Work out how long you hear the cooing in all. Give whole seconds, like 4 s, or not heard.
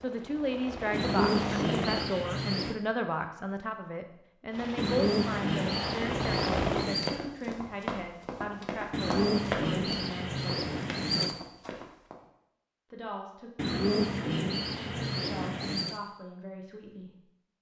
9 s.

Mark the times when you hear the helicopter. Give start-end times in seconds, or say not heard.
0.0-2.1, 4.5-6.9.